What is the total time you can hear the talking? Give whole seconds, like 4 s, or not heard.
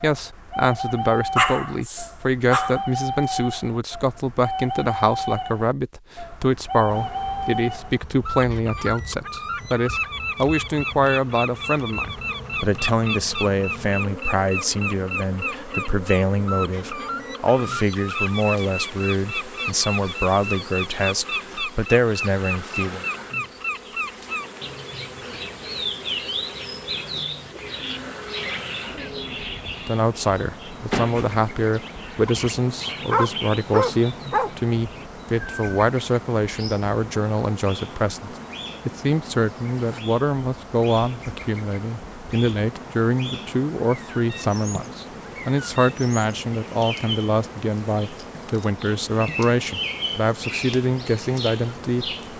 45 s.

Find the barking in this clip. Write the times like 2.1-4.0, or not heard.
1.4-2.8, 32.2-34.5.